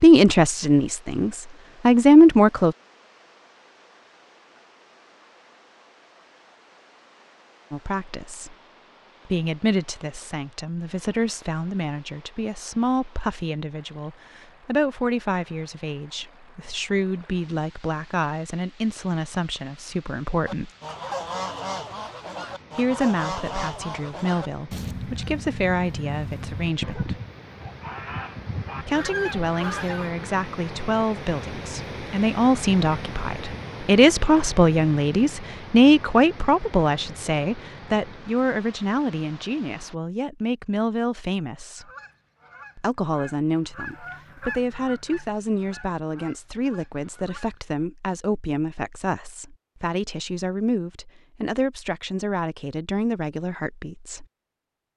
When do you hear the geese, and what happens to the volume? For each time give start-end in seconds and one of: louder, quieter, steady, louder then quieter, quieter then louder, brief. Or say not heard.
20.4-30.1 steady
41.8-47.6 louder then quieter.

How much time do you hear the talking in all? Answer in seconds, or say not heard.
44 s.